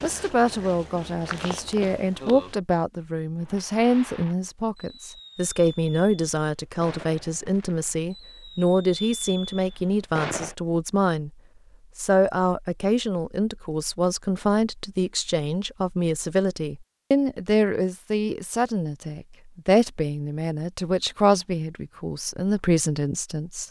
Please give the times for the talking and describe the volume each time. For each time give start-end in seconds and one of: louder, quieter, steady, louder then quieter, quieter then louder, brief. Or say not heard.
0.0-11.3 steady
11.9-23.6 steady.